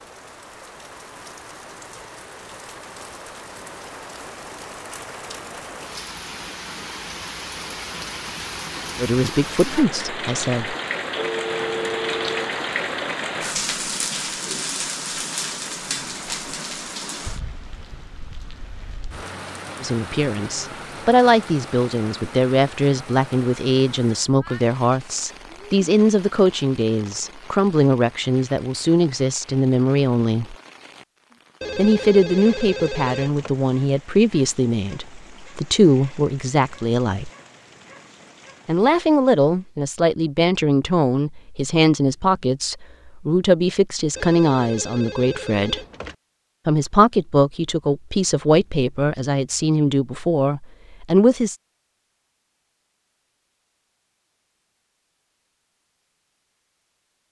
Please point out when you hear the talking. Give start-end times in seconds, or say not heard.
9.0-10.8, 19.8-30.6, 31.8-37.3, 38.6-45.8, 46.6-51.5.